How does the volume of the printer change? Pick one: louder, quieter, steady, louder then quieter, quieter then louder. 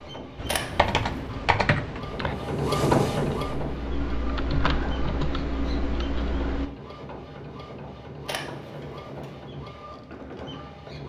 louder then quieter.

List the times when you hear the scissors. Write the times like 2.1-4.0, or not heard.
0.5-1.2, 8.2-9.4.